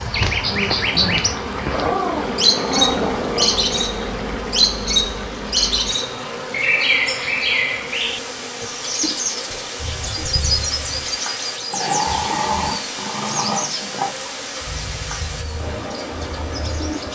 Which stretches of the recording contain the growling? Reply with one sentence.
You can hear the growling from 1.7 to 3.5 s and from 11.7 to 14.2 s.